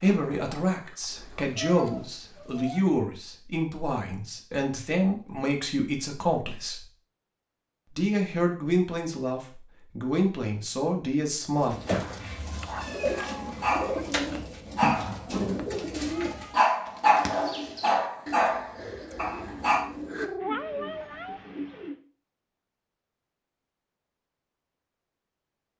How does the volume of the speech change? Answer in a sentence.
The loudness of the speech stays about the same.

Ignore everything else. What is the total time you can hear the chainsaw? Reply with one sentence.
The chainsaw can't be heard in this clip.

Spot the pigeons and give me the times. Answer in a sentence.
The pigeons can be heard from 11.6 to 21.9 s.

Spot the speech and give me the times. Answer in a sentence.
The speech can be heard from 0.0 to 6.8 s and from 8.0 to 11.8 s.